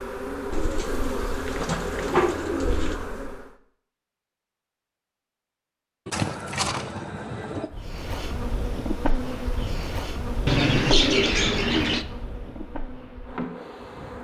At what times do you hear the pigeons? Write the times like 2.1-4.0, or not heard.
0.5-3.1, 6.0-7.7, 10.4-12.1.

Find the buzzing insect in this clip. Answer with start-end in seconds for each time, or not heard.
0.0-3.5, 7.7-14.2.